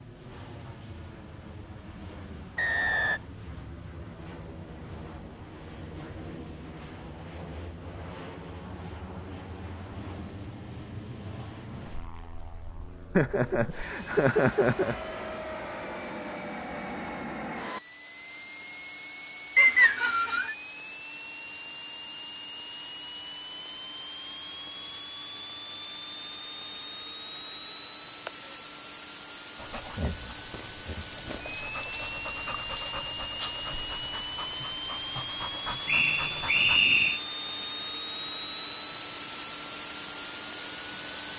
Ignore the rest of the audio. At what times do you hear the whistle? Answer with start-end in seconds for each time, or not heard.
2.5-3.2, 19.6-20.6, 35.9-37.2.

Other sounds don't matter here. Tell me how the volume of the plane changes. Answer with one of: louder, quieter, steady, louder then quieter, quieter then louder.
louder.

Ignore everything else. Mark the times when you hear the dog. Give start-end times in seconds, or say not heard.
29.6-36.9.